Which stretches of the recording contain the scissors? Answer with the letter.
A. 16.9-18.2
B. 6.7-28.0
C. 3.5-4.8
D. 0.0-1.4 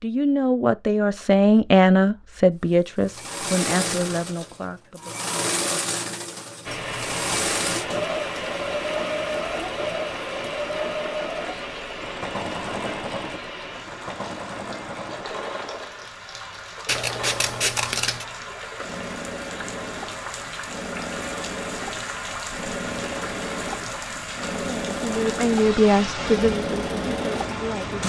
A.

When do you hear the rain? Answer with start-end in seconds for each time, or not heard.
6.7-28.0.